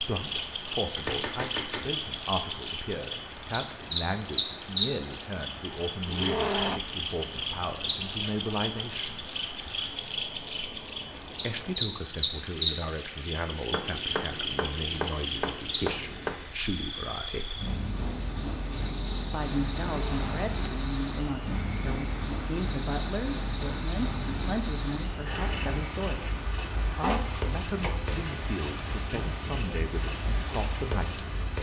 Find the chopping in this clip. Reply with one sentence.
The chopping can be heard from 0.9 to 1.9 s, from 13.7 to 16.4 s and from 27.0 to 28.1 s.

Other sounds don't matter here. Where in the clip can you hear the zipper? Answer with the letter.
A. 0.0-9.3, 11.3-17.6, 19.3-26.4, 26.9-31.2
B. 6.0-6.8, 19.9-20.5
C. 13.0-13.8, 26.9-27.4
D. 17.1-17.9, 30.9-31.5
B.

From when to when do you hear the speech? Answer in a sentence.
The speech can be heard from 0.0 to 9.3 s, from 11.3 to 17.6 s, from 19.3 to 26.4 s and from 26.9 to 31.2 s.